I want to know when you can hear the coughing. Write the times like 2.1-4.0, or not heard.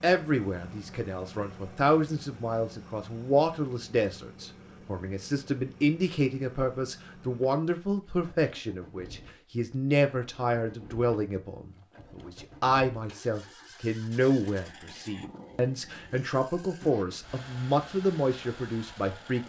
not heard.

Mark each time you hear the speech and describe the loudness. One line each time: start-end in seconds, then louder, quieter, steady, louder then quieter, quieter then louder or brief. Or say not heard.
0.0-19.4 steady.